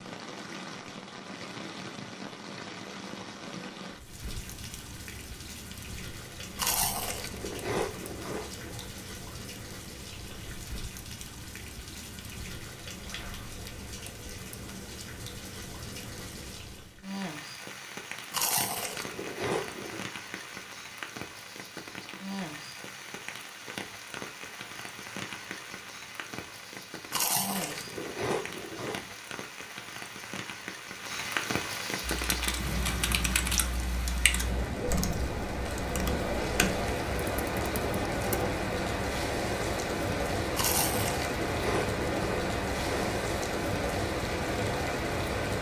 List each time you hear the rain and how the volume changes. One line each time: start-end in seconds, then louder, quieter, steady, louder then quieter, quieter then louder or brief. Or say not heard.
0.0-45.5 louder.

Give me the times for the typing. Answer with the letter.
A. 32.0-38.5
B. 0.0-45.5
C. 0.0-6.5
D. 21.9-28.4
A.